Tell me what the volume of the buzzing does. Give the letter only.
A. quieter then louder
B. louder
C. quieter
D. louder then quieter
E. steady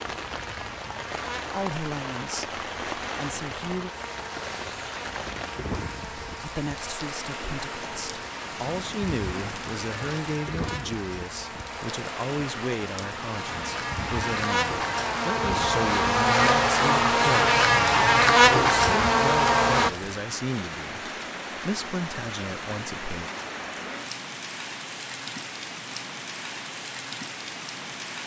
B.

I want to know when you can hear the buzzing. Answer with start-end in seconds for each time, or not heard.
0.0-19.9.